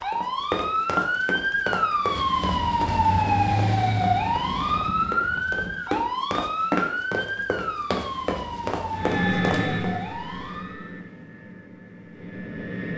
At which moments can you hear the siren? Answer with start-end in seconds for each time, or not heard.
0.0-10.9.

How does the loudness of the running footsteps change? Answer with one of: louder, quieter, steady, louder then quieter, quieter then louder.
quieter then louder.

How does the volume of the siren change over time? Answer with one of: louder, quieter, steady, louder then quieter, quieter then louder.
quieter.